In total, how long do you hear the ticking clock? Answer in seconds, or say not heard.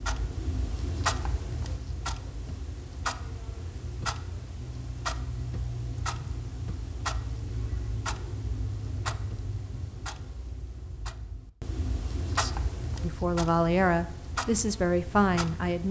16 s.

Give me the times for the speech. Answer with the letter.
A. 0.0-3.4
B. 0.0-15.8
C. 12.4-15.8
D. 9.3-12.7
C.